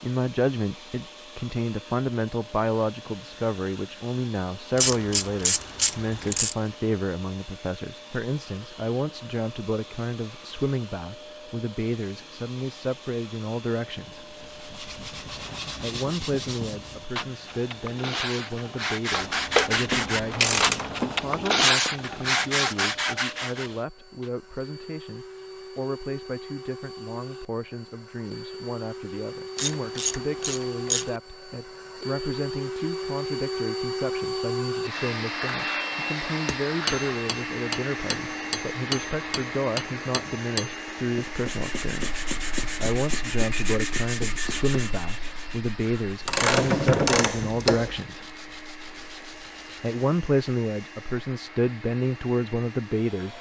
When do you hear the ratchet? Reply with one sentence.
The ratchet can be heard from 4.8 to 6.5 s, from 19.1 to 21.1 s, from 29.6 to 31.1 s and from 46.2 to 48.0 s.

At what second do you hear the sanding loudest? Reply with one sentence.
The loudest moment of the sanding is at 22 seconds.